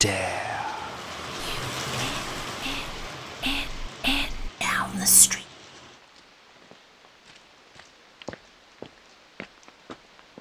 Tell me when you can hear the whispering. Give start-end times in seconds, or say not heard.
0.0-5.4.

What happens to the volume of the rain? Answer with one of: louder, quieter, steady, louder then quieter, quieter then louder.
quieter then louder.